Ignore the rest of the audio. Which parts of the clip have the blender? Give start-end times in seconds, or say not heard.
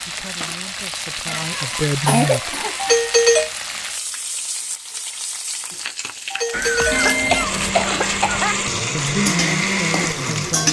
6.9-10.6.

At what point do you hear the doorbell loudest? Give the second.
3 s.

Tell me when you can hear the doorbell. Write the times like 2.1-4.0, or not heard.
2.8-3.5, 6.3-7.3.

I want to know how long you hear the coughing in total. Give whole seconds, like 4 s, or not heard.
4 s.